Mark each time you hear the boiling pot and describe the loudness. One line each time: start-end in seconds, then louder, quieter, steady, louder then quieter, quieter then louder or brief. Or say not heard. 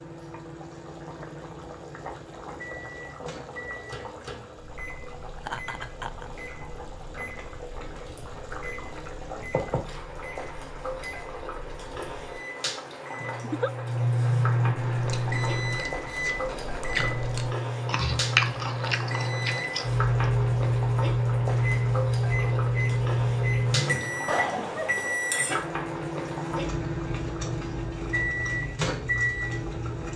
0.0-30.1 louder.